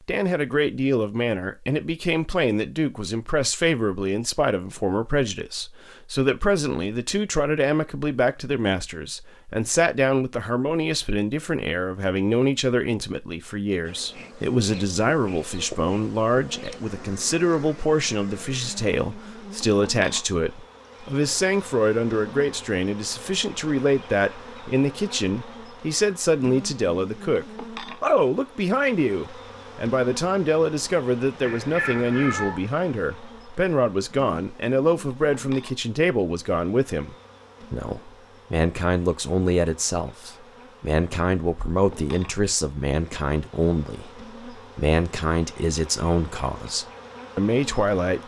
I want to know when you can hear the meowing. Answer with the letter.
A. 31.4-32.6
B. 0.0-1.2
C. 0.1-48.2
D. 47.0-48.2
A.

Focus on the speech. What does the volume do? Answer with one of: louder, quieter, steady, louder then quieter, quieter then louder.
steady.